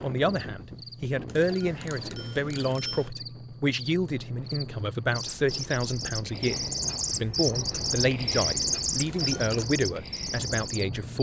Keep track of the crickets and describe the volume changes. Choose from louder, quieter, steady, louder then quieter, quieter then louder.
louder.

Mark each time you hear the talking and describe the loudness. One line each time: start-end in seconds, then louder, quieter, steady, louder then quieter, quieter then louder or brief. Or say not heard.
0.0-11.1 steady.